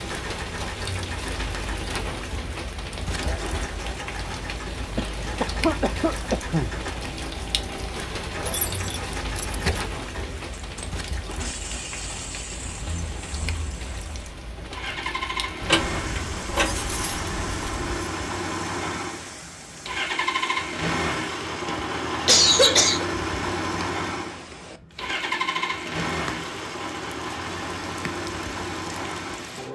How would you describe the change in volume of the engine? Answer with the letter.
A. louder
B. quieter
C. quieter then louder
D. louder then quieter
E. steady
A.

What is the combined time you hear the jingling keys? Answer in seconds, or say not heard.
4 s.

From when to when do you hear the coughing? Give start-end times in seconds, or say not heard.
5.0-6.8, 22.2-23.1.